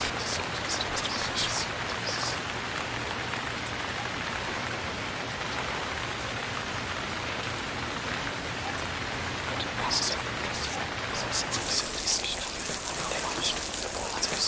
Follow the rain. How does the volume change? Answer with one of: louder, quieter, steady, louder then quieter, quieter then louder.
steady.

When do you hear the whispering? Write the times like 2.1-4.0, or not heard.
0.0-2.4, 9.5-14.4.